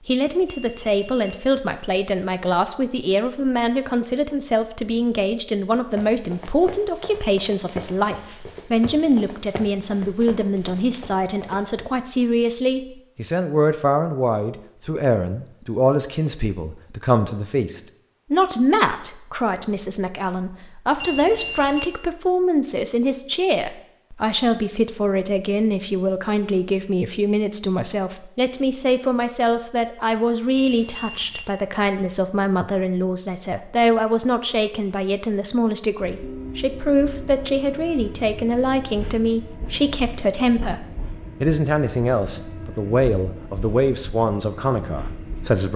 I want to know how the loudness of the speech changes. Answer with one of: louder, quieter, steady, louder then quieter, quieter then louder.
steady.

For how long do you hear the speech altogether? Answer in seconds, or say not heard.
46 s.